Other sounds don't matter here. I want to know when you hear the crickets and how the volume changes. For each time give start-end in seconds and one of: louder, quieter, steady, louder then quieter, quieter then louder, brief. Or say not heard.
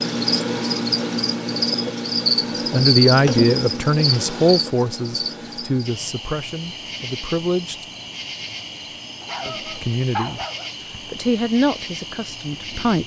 0.0-13.0 quieter.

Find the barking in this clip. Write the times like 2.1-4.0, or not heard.
9.2-10.7.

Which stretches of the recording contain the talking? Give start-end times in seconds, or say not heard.
2.7-7.8, 9.4-10.4, 11.1-13.0.